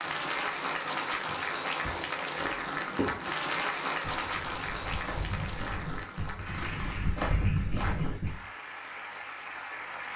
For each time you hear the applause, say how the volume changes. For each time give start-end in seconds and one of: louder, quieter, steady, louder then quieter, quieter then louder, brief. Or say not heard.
0.0-10.1 quieter.